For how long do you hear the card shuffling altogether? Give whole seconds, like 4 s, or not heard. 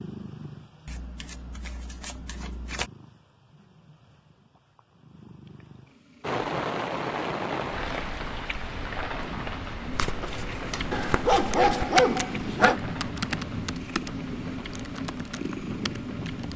4 s.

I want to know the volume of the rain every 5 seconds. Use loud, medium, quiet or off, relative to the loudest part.
off, loud, medium, quiet.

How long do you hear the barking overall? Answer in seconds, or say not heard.
2 s.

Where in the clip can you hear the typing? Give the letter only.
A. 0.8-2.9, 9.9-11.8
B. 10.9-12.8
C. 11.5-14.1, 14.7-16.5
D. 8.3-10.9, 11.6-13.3
C.